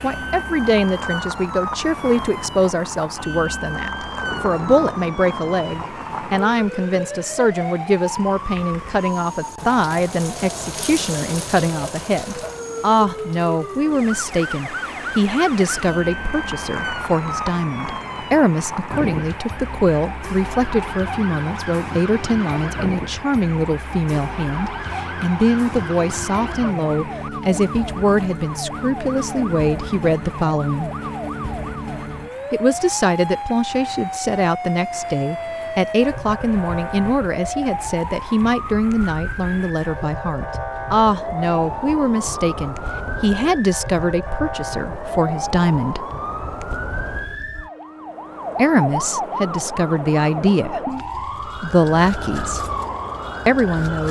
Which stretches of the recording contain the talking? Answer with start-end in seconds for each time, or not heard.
0.0-30.9, 32.5-46.0, 48.5-52.6, 53.5-54.0.